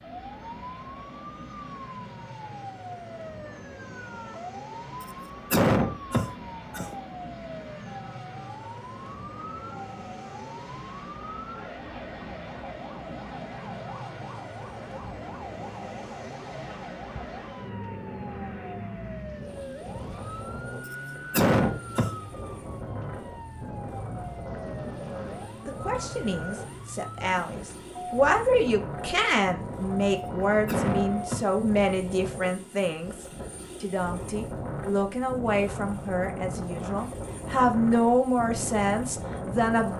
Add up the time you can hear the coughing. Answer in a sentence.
The coughing can be heard for 4 seconds in total.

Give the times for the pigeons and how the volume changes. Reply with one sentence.
The pigeons can't be heard in this clip.